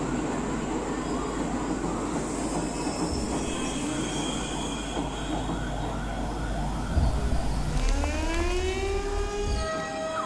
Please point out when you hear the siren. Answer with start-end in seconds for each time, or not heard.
0.0-10.2.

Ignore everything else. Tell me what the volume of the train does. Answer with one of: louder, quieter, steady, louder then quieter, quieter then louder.
quieter.